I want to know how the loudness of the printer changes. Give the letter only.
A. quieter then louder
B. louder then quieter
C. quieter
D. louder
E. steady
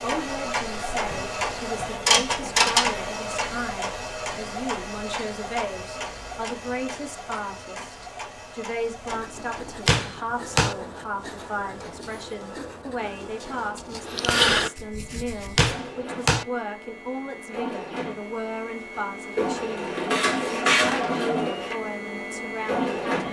A.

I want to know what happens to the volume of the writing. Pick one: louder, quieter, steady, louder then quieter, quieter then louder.
louder.